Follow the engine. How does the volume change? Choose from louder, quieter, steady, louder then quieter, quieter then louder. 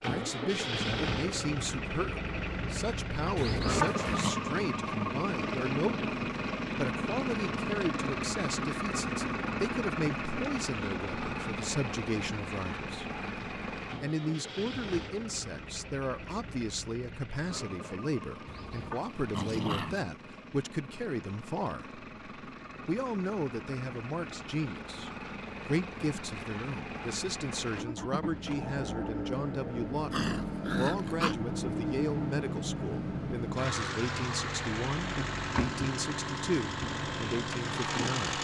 quieter then louder.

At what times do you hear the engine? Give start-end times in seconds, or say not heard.
0.0-38.3.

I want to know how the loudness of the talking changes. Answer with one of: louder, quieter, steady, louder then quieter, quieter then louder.
steady.